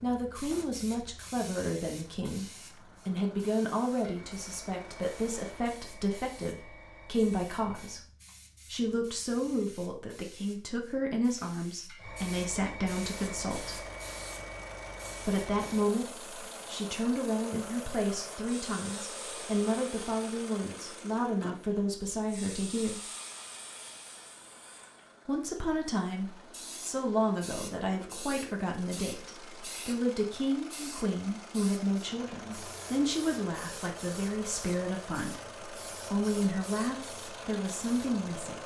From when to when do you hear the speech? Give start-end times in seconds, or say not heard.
0.0-2.5, 3.0-8.0, 8.7-13.8, 15.2-23.1, 25.2-38.6.